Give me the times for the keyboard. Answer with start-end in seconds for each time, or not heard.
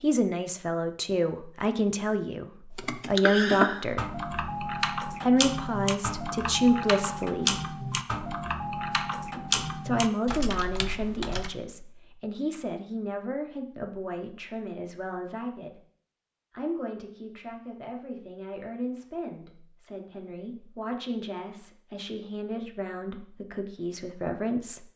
2.8-11.5.